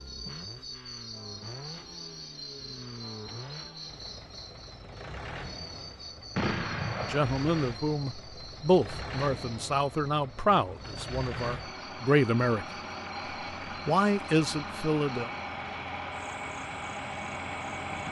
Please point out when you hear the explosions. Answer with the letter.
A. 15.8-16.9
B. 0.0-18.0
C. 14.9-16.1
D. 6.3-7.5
D.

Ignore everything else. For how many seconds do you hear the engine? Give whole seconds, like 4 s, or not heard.
18 s.